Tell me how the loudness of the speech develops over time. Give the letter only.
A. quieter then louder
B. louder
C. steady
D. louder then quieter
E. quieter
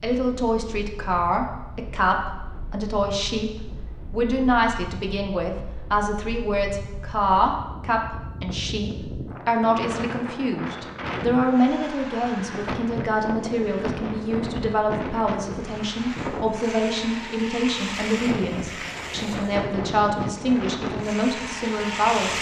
C.